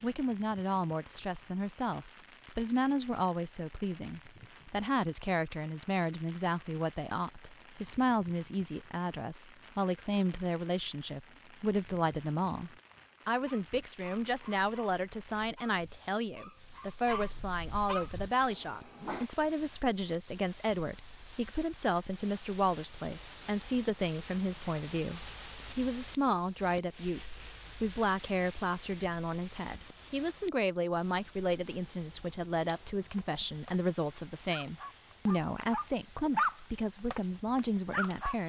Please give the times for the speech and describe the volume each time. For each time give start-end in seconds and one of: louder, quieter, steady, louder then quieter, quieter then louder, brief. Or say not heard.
0.0-38.4 steady.